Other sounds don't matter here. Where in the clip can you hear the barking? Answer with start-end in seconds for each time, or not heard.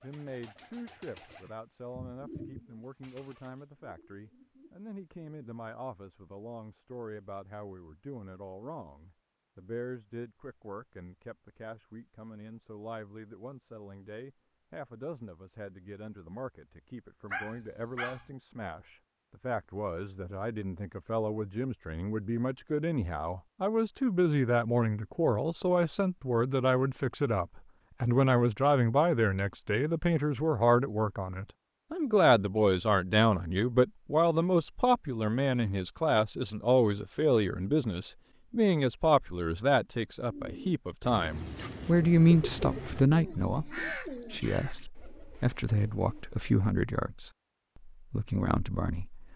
17.3-18.3.